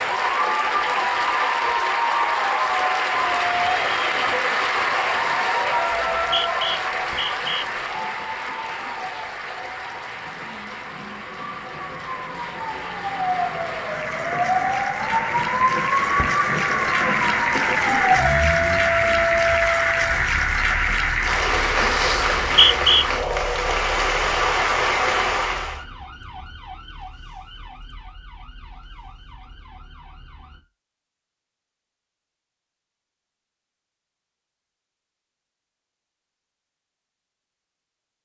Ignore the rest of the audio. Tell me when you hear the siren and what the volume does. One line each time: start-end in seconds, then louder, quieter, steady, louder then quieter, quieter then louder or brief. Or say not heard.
3.2-30.6 louder then quieter.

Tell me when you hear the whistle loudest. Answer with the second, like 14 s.
23 s.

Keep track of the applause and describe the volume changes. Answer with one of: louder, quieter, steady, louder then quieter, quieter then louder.
quieter then louder.